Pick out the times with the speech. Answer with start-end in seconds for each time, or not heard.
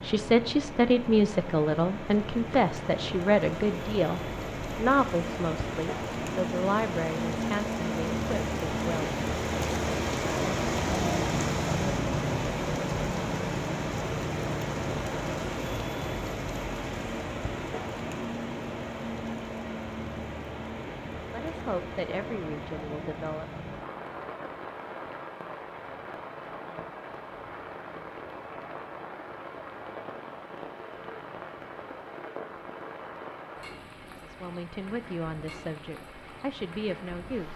0.0-9.2, 21.3-23.4, 34.0-37.5.